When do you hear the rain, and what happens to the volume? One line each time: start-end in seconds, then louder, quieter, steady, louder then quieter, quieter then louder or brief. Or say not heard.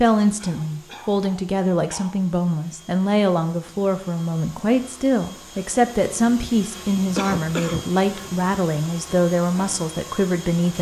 not heard.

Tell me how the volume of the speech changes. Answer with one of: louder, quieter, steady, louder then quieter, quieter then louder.
steady.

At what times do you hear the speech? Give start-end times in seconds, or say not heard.
0.0-10.7.